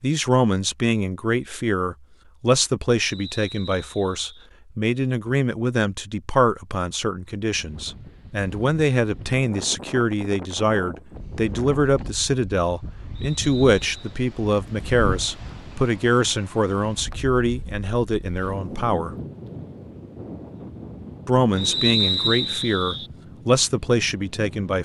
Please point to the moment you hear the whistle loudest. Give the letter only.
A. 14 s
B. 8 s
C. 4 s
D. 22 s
D.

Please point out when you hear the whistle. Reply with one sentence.
The whistle can be heard from 3.0 to 4.5 s, from 13.2 to 14.2 s and from 21.6 to 23.1 s.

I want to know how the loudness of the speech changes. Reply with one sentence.
The loudness of the speech stays about the same.